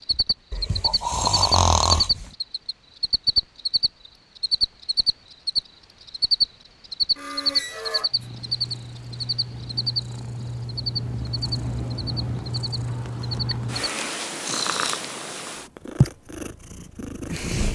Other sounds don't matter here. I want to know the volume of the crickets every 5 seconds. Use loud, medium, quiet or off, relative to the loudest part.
loud, loud, medium, off.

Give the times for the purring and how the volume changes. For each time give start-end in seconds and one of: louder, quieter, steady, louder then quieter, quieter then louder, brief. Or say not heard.
8.1-17.6 louder.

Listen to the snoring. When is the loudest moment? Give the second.
2 s.